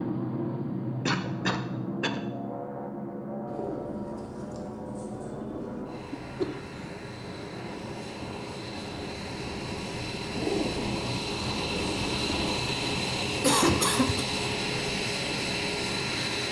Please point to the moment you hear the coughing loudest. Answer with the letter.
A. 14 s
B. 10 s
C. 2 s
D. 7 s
A.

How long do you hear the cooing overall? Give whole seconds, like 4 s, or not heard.
5 s.